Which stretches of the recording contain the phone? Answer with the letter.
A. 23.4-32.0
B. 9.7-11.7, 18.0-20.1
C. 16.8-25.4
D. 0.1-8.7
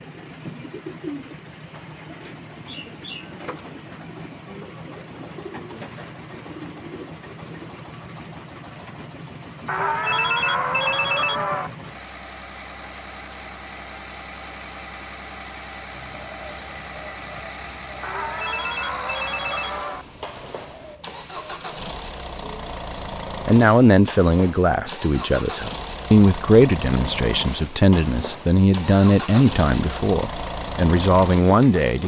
B.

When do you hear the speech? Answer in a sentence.
You can hear the speech from 23.4 to 32.0 s.